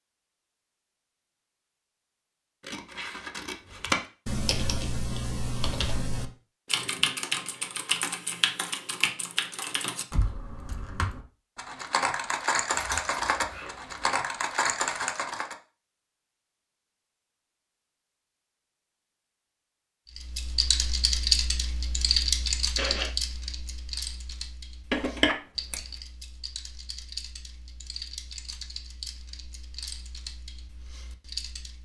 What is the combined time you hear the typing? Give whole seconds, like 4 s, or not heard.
23 s.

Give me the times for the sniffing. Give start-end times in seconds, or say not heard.
22.8-23.2.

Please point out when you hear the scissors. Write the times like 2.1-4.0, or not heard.
2.6-4.0, 12.8-13.9, 24.9-25.8.